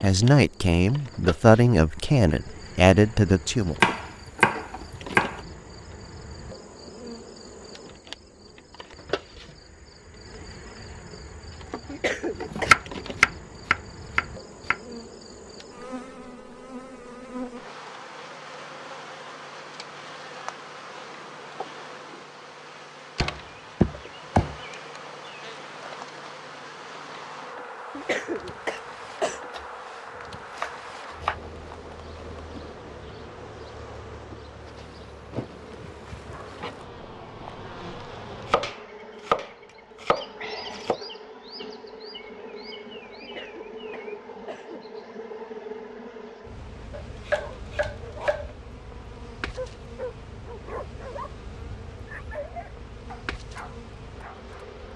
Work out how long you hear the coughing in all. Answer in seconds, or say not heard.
4 s.